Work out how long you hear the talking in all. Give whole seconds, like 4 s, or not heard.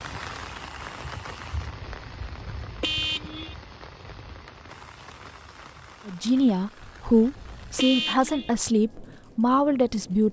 4 s.